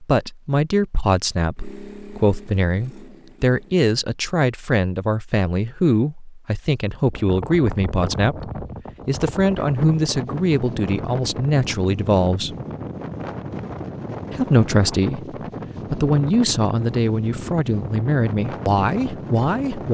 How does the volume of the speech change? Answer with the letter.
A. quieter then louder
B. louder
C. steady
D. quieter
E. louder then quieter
C.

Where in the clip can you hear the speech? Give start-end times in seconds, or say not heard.
0.0-12.6, 14.3-19.8.